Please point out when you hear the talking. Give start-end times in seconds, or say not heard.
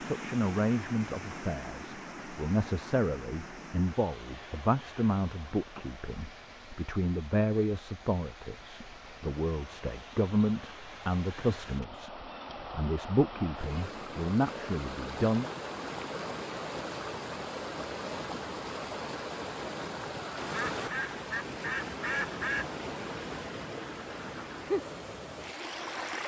0.1-15.5.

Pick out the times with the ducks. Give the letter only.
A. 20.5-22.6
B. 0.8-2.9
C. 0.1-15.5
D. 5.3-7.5
A.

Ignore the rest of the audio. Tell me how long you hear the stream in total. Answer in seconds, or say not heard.
26 s.